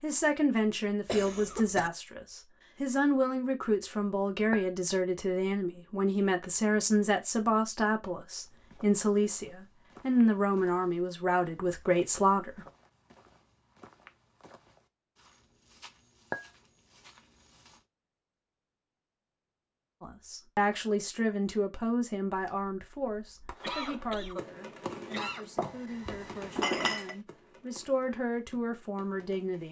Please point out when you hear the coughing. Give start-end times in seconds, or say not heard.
1.1-1.9, 23.6-25.5.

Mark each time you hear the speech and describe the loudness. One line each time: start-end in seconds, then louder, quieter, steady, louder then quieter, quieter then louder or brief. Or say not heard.
0.0-12.7 steady
20.0-29.6 quieter then louder.